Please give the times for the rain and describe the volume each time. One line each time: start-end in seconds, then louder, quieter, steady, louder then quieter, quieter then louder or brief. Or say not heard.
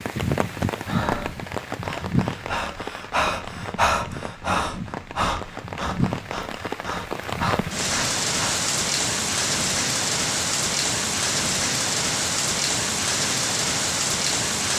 0.0-14.7 quieter then louder.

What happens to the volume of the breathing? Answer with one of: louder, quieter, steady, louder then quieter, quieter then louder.
louder then quieter.